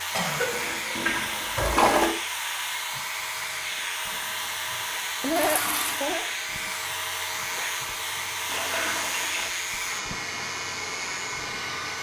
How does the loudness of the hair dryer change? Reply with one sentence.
The volume of the hair dryer stays about the same.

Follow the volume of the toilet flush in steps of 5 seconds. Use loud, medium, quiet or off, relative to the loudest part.
loud, medium, off.